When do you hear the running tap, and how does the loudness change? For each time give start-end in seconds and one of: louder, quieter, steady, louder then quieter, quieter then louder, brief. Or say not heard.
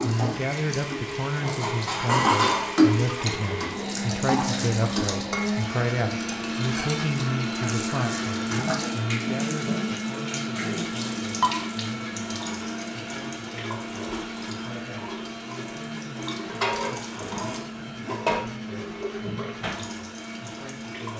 0.0-21.1 quieter.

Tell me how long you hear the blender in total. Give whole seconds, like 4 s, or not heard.
21 s.